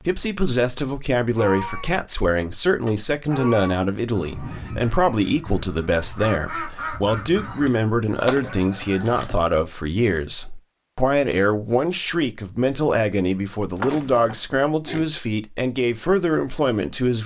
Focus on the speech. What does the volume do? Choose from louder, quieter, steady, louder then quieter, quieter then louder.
steady.